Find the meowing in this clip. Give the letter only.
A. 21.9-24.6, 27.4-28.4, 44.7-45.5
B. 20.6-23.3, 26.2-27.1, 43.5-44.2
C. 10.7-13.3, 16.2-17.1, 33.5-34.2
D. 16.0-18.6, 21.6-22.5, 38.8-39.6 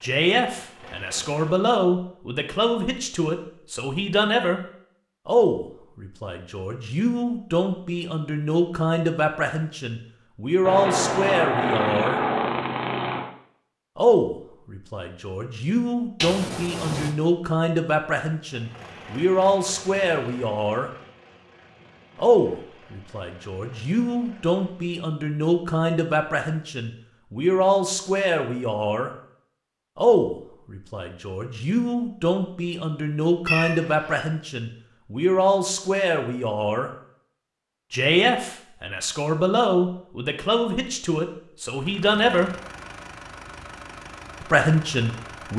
C.